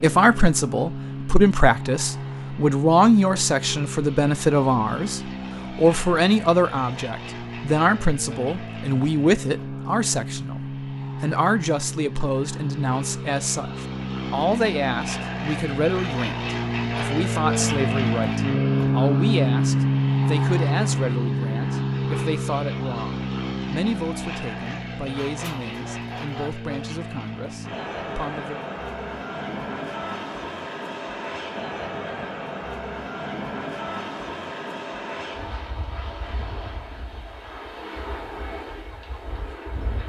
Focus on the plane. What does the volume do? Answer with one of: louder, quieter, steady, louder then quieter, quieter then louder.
louder then quieter.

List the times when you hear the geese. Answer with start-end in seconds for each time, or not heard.
25.2-26.7.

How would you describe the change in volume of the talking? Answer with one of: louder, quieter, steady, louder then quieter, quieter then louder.
quieter.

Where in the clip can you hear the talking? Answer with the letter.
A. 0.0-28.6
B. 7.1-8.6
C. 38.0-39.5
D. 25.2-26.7
A.